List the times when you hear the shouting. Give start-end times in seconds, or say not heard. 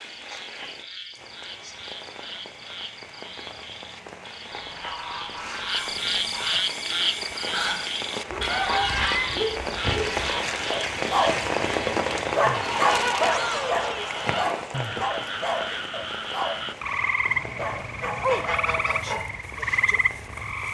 13.2-14.2.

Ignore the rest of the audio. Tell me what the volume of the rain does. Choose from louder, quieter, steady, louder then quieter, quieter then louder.
louder then quieter.